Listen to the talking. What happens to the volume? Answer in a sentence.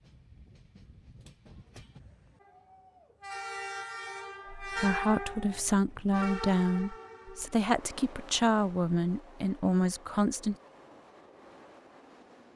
The volume of the talking stays about the same.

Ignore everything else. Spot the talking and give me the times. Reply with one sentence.
You can hear the talking from 4.5 to 10.6 s.